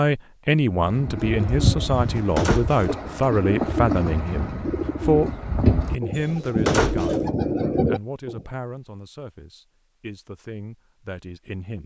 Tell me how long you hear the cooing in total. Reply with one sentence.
You can hear the cooing for 8 seconds altogether.